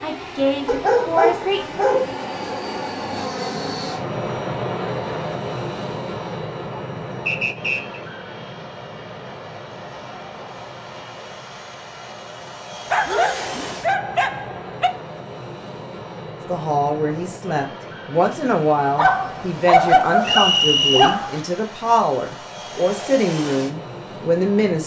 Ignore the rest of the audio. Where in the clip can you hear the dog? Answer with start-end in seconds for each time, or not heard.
0.7-2.1, 12.9-14.9, 18.9-21.4.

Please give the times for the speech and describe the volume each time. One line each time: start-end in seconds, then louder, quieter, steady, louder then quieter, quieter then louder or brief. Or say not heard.
0.0-1.6 brief
16.4-24.8 steady.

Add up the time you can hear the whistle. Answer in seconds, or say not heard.
2 s.